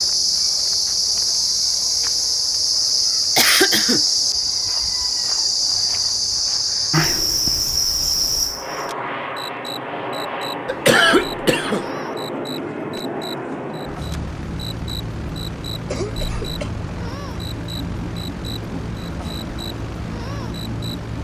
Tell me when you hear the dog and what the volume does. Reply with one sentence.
The dog can't be heard in this clip.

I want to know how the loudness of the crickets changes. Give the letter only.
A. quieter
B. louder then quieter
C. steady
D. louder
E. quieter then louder
A.